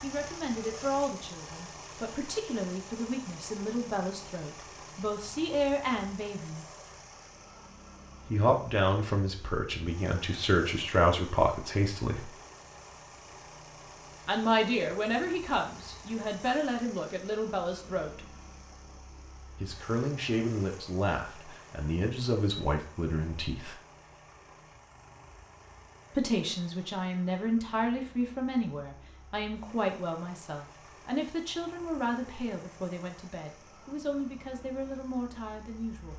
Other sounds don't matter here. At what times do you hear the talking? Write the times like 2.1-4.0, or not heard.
0.0-6.7, 8.3-12.2, 14.2-18.3, 19.6-23.8, 26.1-36.1.